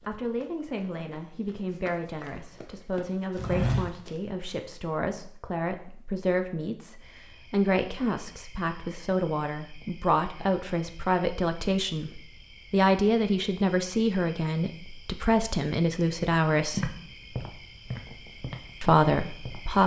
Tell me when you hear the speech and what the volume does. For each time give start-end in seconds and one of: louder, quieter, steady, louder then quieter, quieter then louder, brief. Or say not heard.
0.1-16.9 louder
18.8-19.8 brief.